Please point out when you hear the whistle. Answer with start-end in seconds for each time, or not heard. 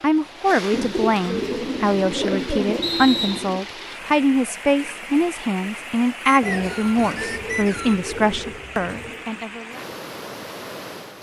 2.8-3.5, 6.2-8.1.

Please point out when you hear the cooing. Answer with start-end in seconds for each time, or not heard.
0.7-3.6, 6.4-9.2.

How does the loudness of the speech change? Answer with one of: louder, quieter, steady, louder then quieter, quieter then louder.
steady.